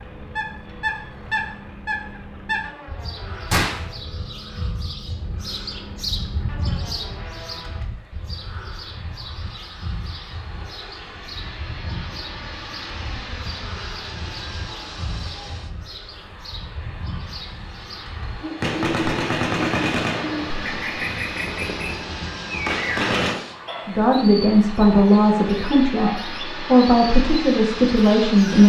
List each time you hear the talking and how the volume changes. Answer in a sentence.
The talking can be heard from 23.9 to 28.6 s, getting quieter then louder.